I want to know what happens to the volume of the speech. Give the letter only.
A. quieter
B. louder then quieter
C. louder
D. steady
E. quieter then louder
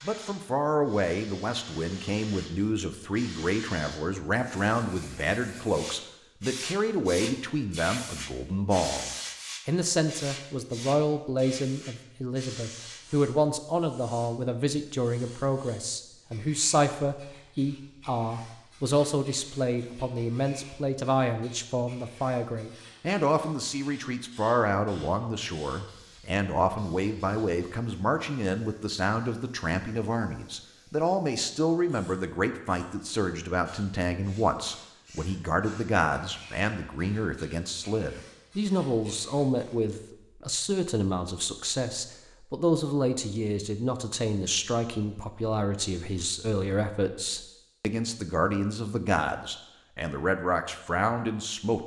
D.